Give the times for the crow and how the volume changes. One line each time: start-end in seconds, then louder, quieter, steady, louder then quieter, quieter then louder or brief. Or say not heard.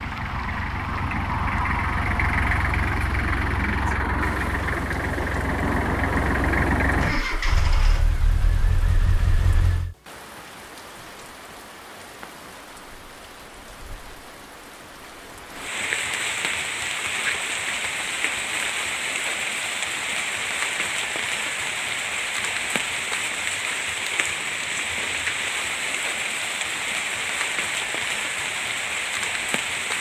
not heard.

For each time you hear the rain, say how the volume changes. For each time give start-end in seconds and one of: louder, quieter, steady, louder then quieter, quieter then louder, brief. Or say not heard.
0.0-29.9 louder.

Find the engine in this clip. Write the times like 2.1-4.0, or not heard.
0.0-9.9.